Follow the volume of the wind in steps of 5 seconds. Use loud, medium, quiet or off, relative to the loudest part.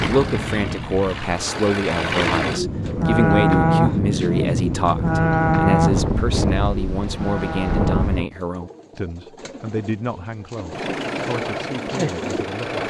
loud, loud, off.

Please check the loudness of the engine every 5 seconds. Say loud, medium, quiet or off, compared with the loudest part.
loud, off, loud.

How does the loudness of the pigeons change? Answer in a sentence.
The volume of the pigeons goes down, then up.